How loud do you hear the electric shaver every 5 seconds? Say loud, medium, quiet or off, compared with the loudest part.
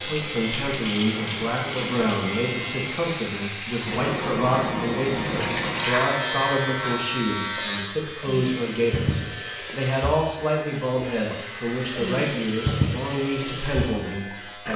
loud, loud, medium.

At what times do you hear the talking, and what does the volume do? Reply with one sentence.
The talking can be heard from 0.0 to 14.7 s, at a steady volume.